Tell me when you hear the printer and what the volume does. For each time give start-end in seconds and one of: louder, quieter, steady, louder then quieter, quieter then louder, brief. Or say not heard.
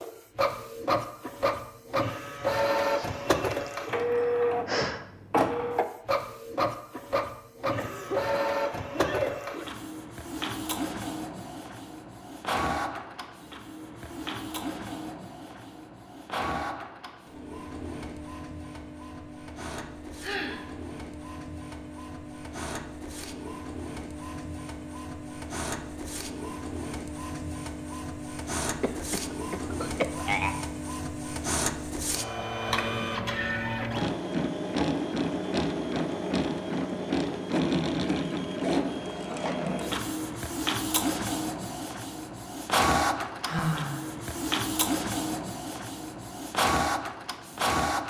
0.0-48.0 quieter then louder.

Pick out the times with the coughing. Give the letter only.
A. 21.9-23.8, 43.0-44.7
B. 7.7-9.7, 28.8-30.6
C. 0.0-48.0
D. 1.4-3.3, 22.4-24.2
B.